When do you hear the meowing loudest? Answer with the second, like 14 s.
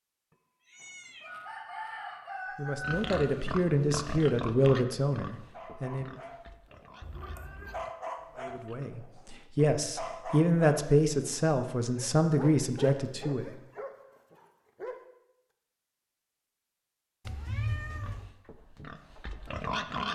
18 s.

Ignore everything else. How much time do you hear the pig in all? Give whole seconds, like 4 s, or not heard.
8 s.